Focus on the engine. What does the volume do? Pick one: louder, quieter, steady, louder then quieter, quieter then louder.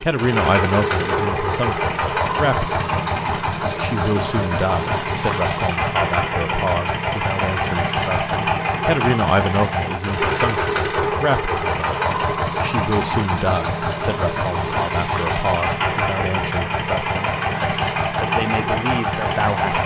steady.